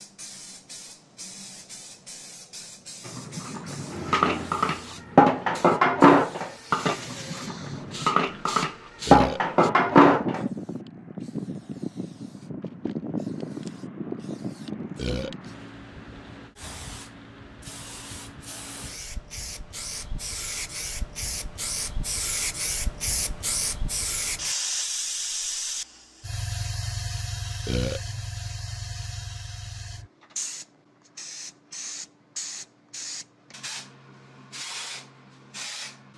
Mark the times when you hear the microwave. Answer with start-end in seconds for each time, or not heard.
not heard.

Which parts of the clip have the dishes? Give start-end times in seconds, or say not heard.
3.0-10.4.